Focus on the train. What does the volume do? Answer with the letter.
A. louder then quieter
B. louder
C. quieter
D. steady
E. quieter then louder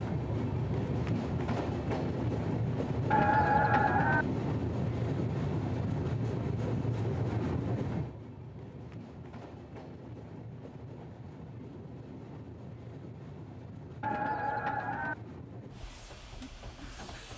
C.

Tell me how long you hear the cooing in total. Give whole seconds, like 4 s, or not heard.
2 s.